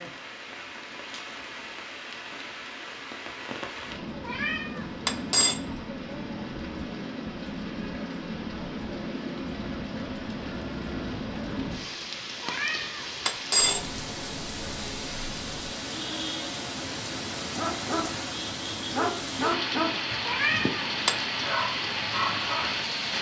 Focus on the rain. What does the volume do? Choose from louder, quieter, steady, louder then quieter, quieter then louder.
louder.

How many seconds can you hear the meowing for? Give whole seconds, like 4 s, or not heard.
4 s.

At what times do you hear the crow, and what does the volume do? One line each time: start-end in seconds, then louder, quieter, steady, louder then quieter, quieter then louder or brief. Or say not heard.
not heard.